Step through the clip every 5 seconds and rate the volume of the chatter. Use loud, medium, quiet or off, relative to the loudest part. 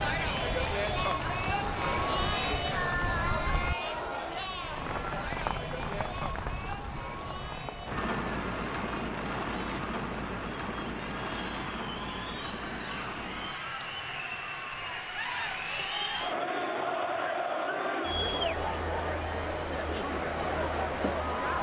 loud, medium, medium, loud, loud.